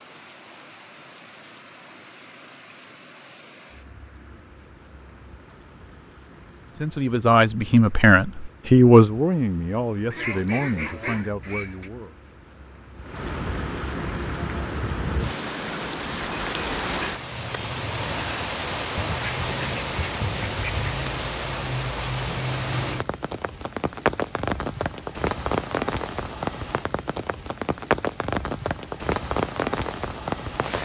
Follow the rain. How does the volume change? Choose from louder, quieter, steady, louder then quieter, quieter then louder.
louder.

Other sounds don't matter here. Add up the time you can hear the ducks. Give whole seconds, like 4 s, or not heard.
4 s.